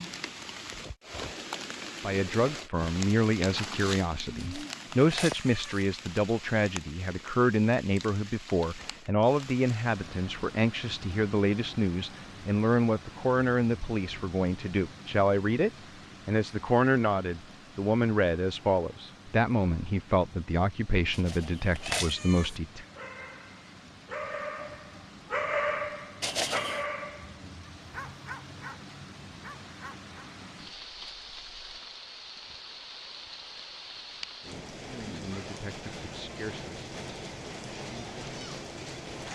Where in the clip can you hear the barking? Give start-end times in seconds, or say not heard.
22.8-30.1.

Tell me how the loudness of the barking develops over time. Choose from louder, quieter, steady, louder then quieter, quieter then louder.
louder then quieter.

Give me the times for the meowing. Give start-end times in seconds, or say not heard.
4.3-5.8, 21.1-22.6, 26.2-26.9.